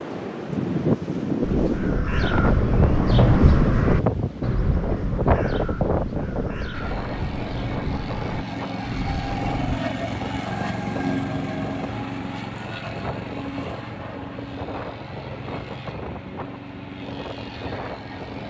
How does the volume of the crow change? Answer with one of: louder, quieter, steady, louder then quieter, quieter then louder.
quieter.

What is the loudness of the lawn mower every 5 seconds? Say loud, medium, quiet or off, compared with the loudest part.
off, loud, loud, medium.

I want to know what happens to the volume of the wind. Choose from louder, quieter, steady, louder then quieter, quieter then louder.
quieter.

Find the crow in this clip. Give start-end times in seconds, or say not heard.
1.4-9.8.